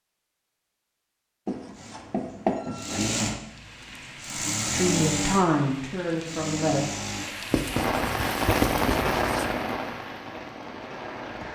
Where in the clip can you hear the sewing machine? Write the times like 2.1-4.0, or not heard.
1.8-7.3.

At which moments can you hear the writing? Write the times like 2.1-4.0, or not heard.
1.4-3.0, 7.5-9.5.